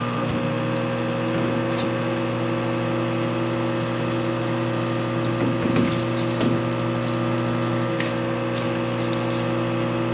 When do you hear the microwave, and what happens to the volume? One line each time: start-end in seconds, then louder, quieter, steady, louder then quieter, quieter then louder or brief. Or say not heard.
0.0-10.0 steady.